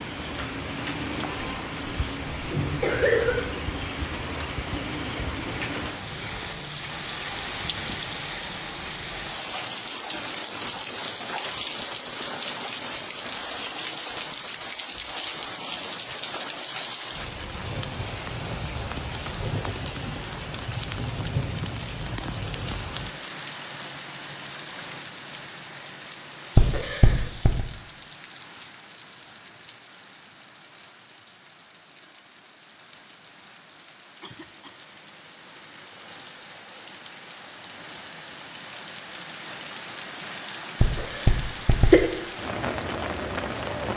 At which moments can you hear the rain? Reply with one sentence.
You can hear the rain from 0.0 to 43.9 s.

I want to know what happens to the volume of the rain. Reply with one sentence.
The volume of the rain goes down, then up.